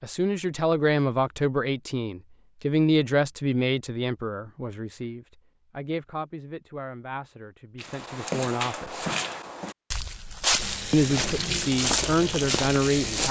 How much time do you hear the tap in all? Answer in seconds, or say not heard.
3 s.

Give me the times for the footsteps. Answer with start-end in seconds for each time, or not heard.
7.8-13.2.